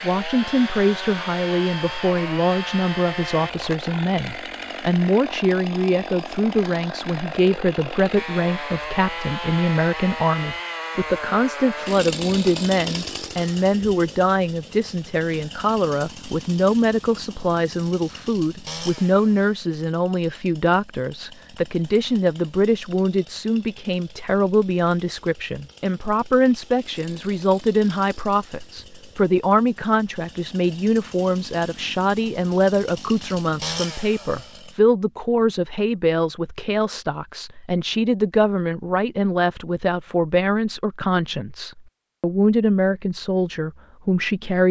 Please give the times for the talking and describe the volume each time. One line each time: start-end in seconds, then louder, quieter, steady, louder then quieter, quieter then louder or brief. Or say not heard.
0.0-44.6 steady.